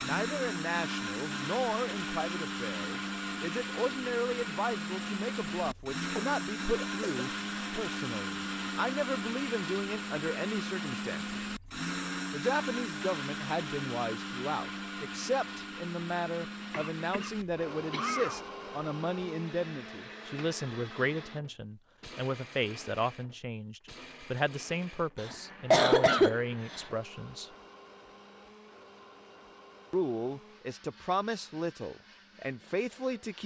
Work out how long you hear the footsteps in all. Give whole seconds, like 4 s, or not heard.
not heard.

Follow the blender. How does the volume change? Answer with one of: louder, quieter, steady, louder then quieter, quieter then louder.
quieter.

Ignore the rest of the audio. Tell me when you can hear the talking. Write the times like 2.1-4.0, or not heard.
0.0-11.4, 12.3-27.5, 29.9-33.4.